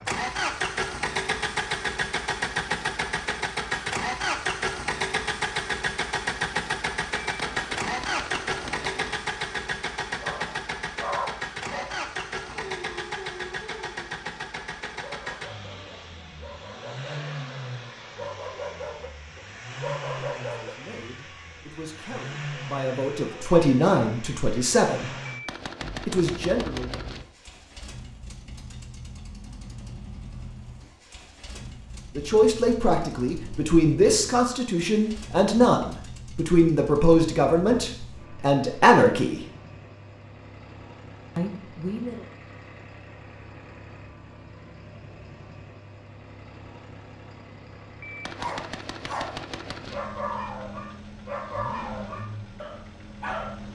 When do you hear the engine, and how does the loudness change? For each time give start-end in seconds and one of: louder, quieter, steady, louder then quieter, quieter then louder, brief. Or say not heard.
0.0-53.7 quieter.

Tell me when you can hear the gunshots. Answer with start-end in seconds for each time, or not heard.
7.3-9.2, 25.2-27.2, 48.0-50.0.